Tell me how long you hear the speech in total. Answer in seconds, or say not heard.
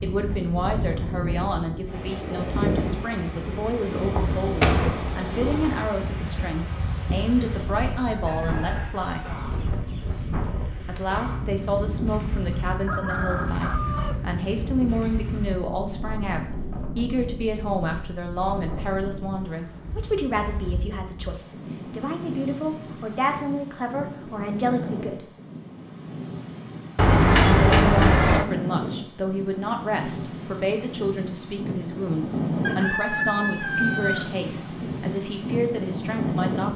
33 s.